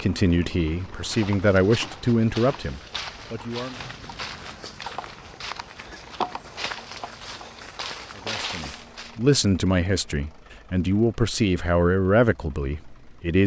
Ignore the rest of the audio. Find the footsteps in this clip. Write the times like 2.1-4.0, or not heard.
0.7-9.2.